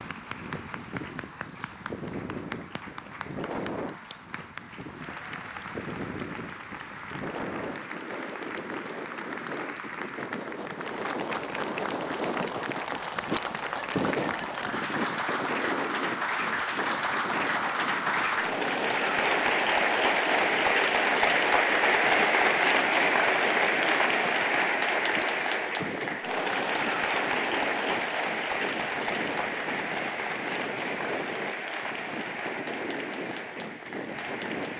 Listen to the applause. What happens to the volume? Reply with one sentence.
The volume of the applause goes up, then down.